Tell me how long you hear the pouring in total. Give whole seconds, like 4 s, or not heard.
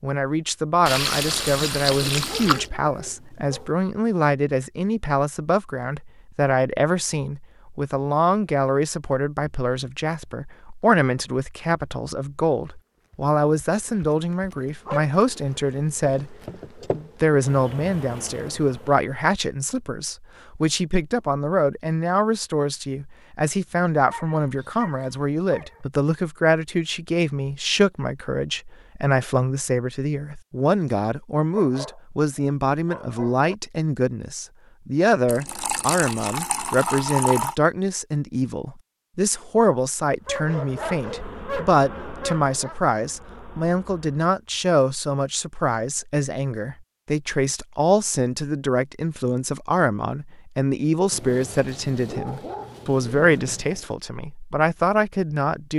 4 s.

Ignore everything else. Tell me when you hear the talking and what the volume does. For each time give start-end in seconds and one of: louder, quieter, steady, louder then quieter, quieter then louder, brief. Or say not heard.
0.0-55.7 steady.